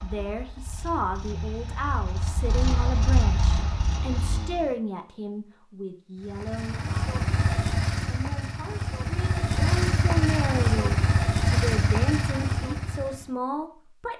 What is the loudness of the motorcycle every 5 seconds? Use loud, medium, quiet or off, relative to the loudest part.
medium, loud, loud.